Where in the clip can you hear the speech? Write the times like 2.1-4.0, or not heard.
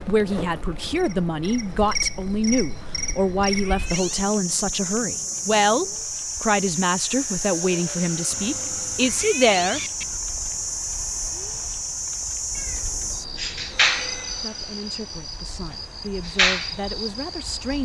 0.0-9.8, 14.3-17.7.